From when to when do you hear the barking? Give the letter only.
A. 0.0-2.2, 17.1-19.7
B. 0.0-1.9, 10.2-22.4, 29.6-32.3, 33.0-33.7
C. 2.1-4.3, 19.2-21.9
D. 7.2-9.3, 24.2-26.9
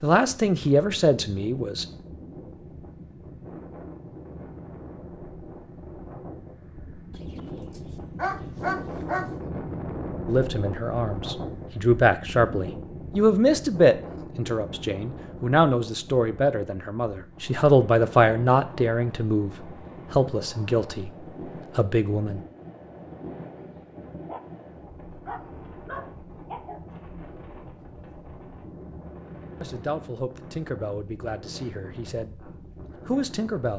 D.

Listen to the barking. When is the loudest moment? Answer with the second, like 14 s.
9 s.